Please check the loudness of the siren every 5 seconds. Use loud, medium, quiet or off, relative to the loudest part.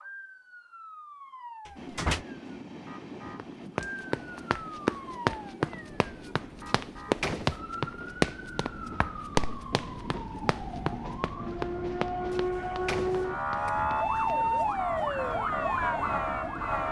quiet, quiet, loud, loud.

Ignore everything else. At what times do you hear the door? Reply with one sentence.
You can hear the door from 1.6 to 2.2 s, from 6.7 to 7.5 s and from 12.3 to 14.7 s.